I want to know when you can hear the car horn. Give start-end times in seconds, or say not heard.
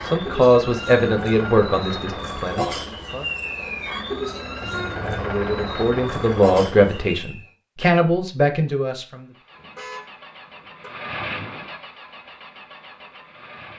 4.6-5.2, 9.6-10.9.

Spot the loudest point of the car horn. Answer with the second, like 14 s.
5 s.